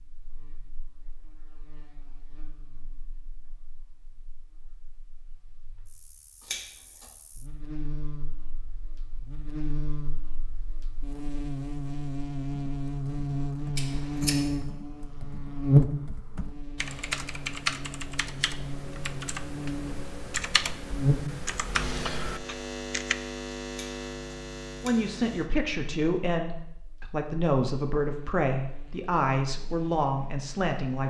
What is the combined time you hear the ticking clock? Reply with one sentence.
You can't hear the ticking clock here.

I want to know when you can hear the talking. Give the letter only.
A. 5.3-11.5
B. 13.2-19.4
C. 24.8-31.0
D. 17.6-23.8
C.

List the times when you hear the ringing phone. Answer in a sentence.
You can't hear the ringing phone here.